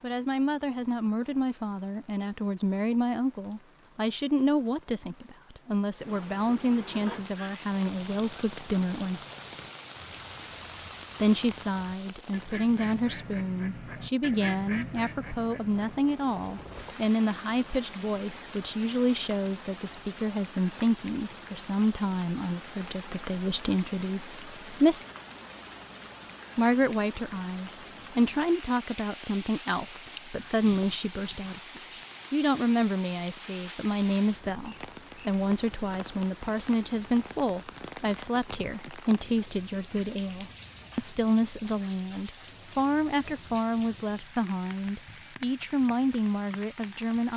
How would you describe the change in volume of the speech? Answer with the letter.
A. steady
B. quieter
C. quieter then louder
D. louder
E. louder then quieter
A.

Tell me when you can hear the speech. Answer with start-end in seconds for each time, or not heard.
0.0-9.2, 11.2-25.0, 26.6-47.3.